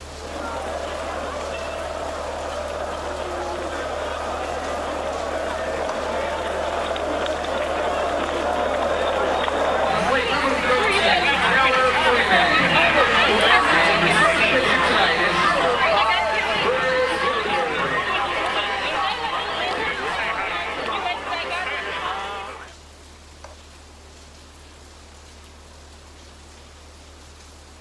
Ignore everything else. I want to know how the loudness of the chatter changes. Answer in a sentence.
The loudness of the chatter goes up, then down.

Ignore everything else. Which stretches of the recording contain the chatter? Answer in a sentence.
The chatter can be heard from 0.0 to 22.8 s.